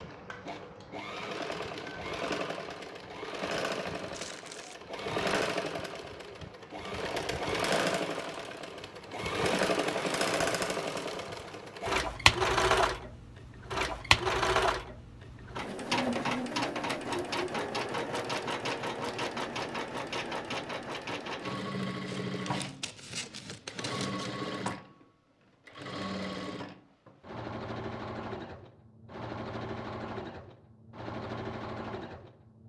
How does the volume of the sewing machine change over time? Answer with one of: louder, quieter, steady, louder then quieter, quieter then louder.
louder then quieter.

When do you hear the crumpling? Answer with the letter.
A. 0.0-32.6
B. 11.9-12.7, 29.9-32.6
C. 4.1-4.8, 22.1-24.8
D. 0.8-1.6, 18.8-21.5
C.